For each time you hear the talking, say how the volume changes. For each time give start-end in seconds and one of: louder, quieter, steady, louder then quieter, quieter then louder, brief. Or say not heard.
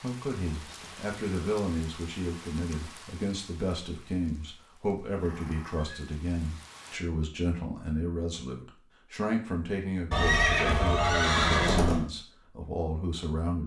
0.0-13.6 steady.